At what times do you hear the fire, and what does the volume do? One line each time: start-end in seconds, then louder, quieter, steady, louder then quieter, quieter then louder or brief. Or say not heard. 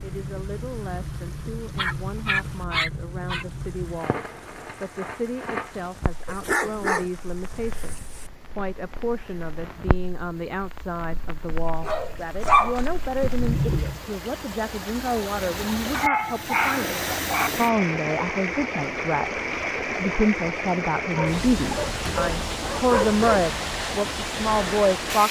0.0-14.0 quieter then louder.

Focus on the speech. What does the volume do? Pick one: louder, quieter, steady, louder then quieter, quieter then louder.
louder.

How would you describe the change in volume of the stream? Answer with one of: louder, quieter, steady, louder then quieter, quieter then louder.
louder.